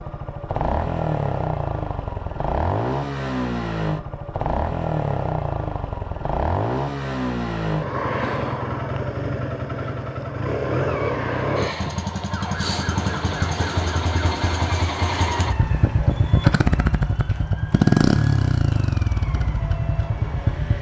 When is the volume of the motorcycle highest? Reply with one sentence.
The loudest moment of the motorcycle is at 18 seconds.